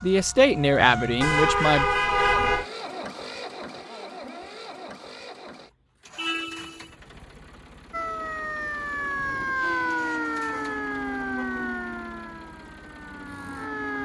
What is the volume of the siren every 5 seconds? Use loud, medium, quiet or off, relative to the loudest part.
medium, loud, loud.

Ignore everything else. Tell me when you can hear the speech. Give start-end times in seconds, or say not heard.
0.0-1.9.